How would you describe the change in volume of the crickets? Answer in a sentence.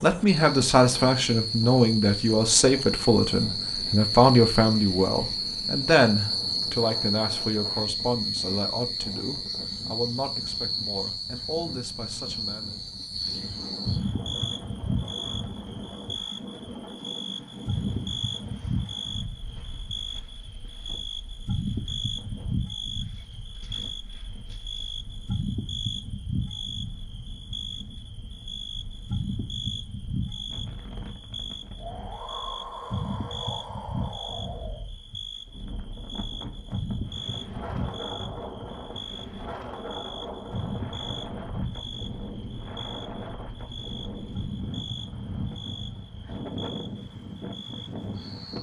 The volume of the crickets goes down.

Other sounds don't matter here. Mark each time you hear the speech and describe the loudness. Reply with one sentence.
You can hear the speech from 0.0 to 12.8 s, getting quieter.